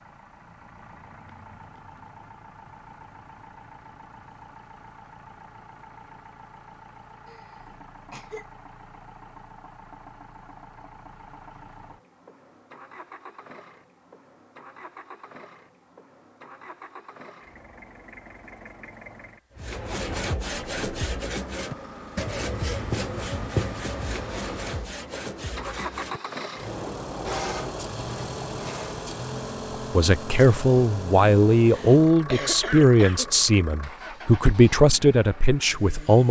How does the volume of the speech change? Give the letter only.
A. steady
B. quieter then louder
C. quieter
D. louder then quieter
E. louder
A.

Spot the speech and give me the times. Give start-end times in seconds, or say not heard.
29.9-36.2.